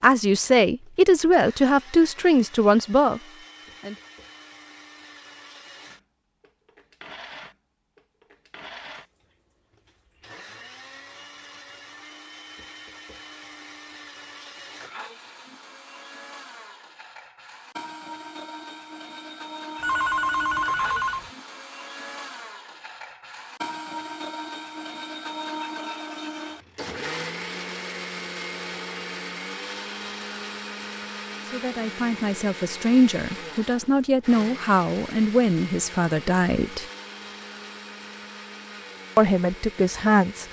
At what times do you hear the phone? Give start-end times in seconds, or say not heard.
19.8-21.3.